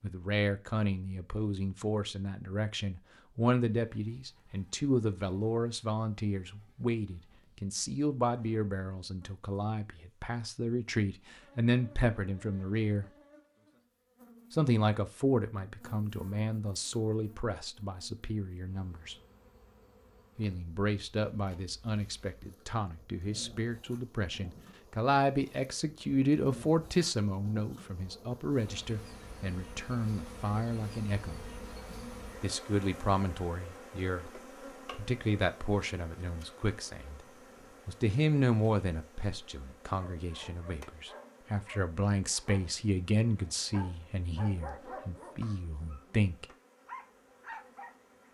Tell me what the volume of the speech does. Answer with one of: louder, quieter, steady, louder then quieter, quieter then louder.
steady.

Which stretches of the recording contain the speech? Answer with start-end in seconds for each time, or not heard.
0.0-13.1, 14.5-19.1, 20.4-31.4, 32.4-37.2, 37.9-46.5.